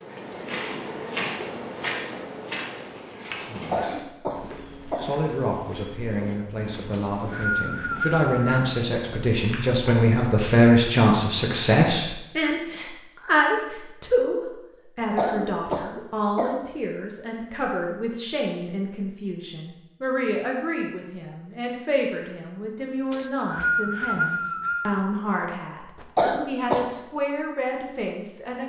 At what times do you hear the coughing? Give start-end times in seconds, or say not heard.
3.5-5.0, 15.0-16.6, 26.0-26.9.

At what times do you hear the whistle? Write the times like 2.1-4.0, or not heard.
6.9-8.7, 23.1-25.0.